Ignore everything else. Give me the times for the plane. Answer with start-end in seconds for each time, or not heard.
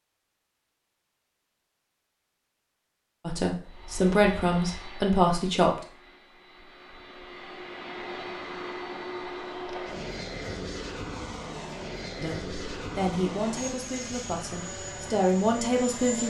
3.6-16.2.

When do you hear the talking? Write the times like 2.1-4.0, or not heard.
3.2-5.8, 12.2-16.2.